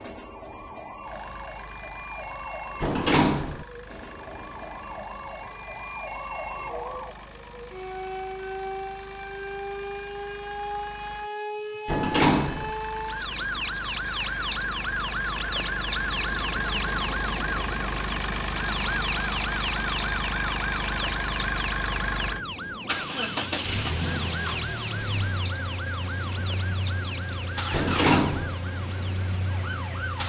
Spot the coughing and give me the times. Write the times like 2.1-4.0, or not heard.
not heard.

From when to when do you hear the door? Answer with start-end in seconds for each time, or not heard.
2.8-3.6, 11.8-12.7, 27.7-28.6.